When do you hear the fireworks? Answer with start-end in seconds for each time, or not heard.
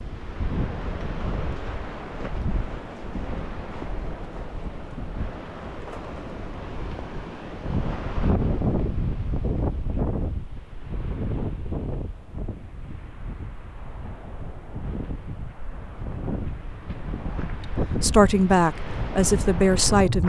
not heard.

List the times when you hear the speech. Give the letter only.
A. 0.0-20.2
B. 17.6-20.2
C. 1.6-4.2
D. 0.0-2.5
B.